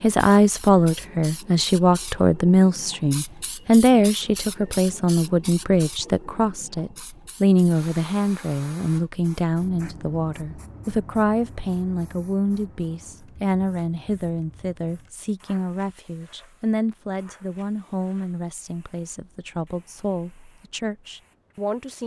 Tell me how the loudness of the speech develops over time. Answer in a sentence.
The loudness of the speech goes down.